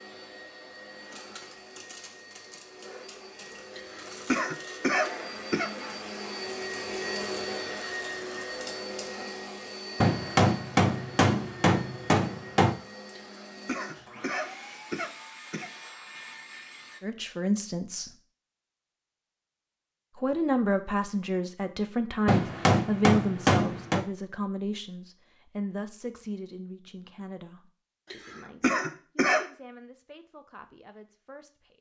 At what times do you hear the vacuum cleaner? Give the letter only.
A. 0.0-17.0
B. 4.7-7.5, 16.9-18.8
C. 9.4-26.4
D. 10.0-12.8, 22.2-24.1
A.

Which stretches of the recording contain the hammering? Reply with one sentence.
You can hear the hammering from 10.0 to 12.8 s and from 22.2 to 24.1 s.